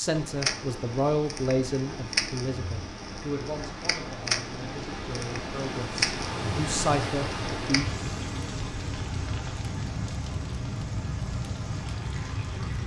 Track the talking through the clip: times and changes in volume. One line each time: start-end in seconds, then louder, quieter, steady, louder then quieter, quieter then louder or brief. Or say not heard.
0.0-7.9 quieter then louder.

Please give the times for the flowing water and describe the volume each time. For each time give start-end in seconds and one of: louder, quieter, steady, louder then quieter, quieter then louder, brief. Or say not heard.
0.0-12.8 louder then quieter.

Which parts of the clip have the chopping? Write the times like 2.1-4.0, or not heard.
not heard.